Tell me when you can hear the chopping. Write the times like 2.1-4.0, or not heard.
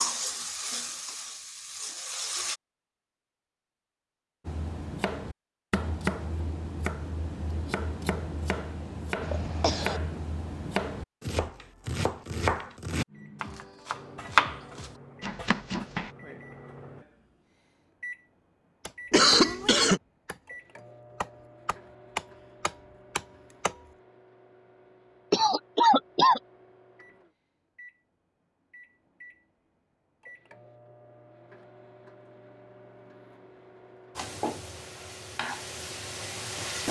4.5-16.1, 18.8-23.8.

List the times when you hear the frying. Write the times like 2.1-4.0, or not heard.
0.0-2.5, 34.1-36.8.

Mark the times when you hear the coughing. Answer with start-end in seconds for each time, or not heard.
9.2-10.0, 19.1-20.0, 25.3-26.4.